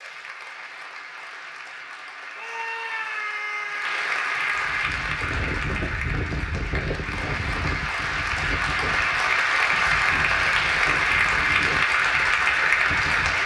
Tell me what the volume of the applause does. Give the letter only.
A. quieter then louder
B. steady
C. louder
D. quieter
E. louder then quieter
C.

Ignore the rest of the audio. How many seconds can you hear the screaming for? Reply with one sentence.
The screaming can be heard for 2 seconds in total.